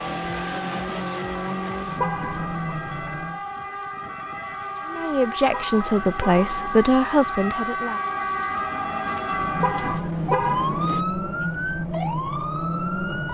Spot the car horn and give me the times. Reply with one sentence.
You can hear the car horn from 1.9 to 2.8 s, from 5.5 to 7.0 s and from 9.6 to 11.1 s.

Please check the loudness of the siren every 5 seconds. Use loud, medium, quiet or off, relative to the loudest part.
medium, loud, loud.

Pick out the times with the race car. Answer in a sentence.
You can hear the race car from 0.0 to 3.5 s and from 9.2 to 13.2 s.